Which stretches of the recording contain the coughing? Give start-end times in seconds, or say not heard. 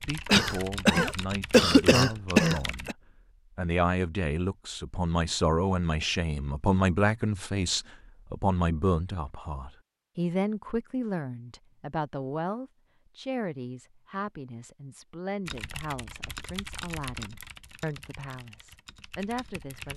0.2-3.0.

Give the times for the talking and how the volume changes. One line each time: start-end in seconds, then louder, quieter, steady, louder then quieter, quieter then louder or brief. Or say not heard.
0.0-3.0 brief
3.5-19.9 quieter.